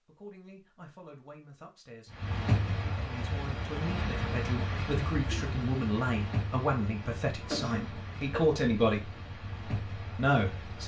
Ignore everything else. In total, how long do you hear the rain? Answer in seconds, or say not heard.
9 s.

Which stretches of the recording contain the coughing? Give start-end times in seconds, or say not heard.
7.4-8.4.